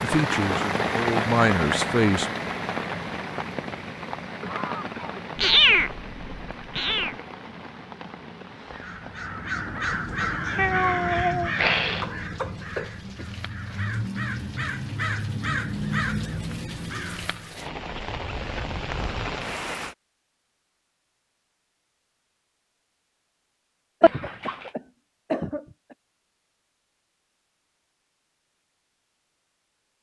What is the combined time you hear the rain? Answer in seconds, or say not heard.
20 s.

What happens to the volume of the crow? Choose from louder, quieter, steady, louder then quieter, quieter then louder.
quieter then louder.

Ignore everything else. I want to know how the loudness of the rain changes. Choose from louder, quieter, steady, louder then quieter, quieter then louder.
quieter then louder.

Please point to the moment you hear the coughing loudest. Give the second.
25 s.